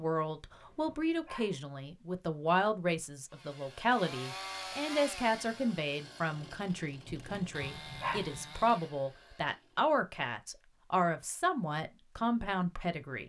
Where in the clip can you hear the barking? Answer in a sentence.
The barking can be heard from 0.5 to 1.6 s and from 7.2 to 8.3 s.